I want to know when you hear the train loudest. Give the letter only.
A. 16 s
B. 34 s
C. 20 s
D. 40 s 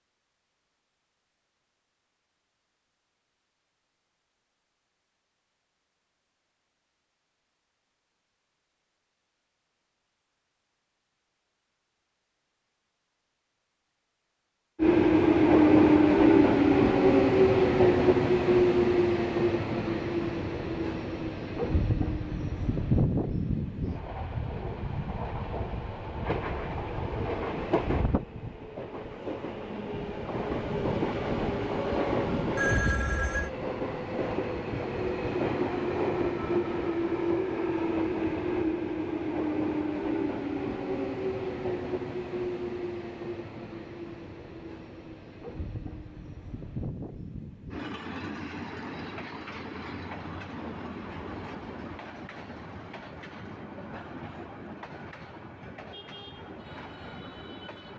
A.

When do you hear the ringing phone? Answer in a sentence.
The ringing phone can be heard from 32.5 to 33.5 s.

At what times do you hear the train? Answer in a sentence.
The train can be heard from 14.8 to 57.9 s.